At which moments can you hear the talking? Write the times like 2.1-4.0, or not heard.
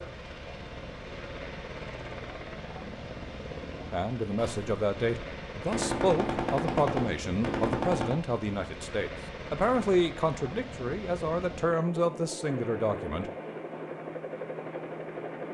3.9-13.3.